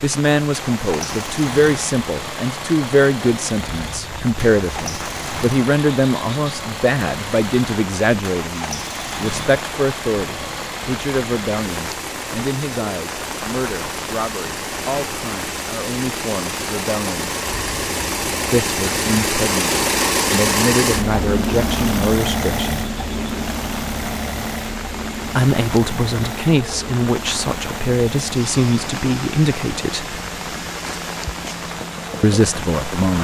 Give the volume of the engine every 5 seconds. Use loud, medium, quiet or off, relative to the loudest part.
medium, medium, medium, loud, loud, medium, medium.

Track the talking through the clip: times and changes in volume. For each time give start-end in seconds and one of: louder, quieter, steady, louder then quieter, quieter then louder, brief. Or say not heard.
0.0-17.3 quieter
18.5-22.9 quieter then louder
25.2-30.2 steady
32.2-33.1 brief.